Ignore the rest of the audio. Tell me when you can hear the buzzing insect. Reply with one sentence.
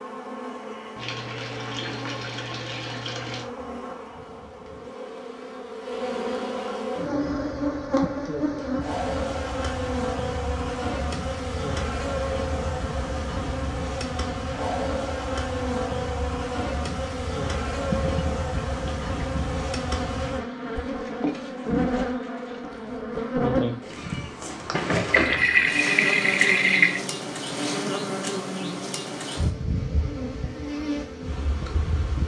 You can hear the buzzing insect from 0.0 to 32.2 s.